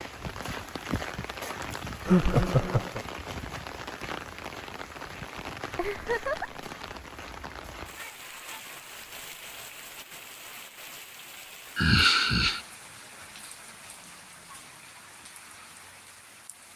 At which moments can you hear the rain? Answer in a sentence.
You can hear the rain from 0.0 to 16.7 s.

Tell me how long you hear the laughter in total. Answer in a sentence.
The laughter can be heard for 3 seconds in total.